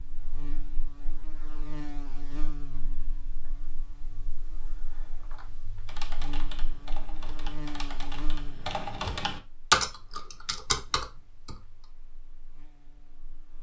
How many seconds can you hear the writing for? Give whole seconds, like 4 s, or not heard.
not heard.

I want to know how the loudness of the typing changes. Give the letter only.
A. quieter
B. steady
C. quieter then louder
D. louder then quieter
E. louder
D.